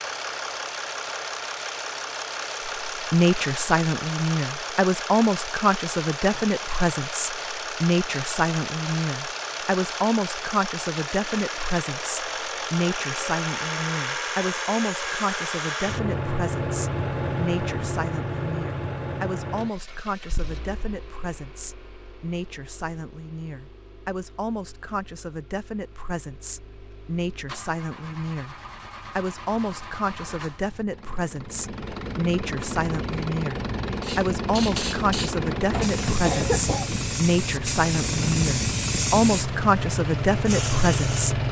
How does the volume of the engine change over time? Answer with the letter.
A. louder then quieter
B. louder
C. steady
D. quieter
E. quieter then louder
E.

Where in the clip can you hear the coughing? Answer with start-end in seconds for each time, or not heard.
35.7-37.0.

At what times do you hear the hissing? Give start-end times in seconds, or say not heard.
34.0-41.3.